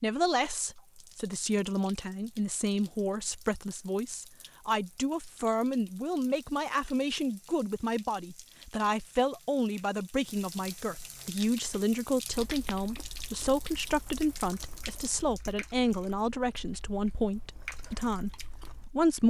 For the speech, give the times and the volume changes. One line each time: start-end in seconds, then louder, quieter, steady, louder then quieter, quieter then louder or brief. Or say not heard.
0.0-19.2 steady.